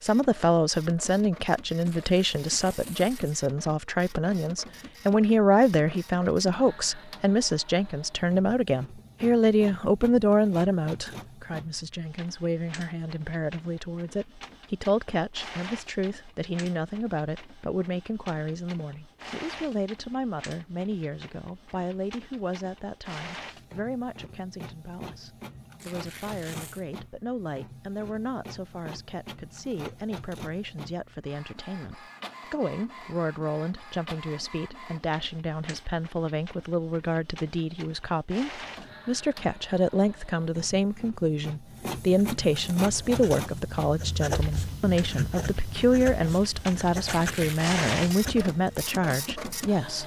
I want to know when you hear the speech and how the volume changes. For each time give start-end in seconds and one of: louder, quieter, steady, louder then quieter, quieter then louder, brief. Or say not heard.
0.0-50.0 quieter then louder.